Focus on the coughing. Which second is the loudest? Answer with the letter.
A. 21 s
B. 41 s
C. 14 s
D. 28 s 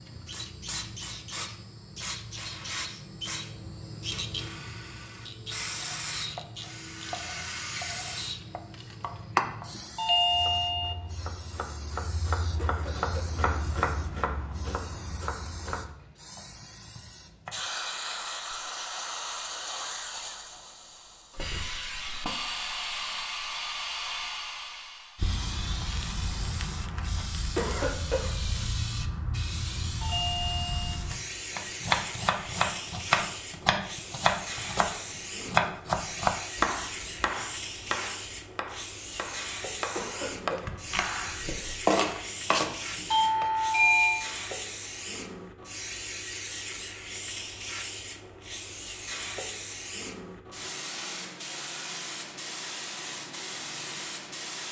D.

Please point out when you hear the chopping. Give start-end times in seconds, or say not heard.
5.8-17.6, 31.6-43.5.